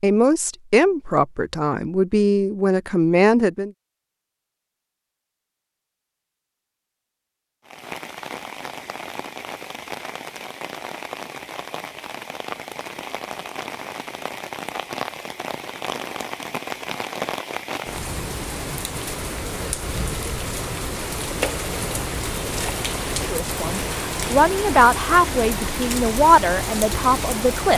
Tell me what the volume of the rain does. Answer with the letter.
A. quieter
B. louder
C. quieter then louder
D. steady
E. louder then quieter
B.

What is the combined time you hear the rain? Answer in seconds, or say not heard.
20 s.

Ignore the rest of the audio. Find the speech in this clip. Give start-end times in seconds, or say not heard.
0.0-3.7, 23.2-27.7.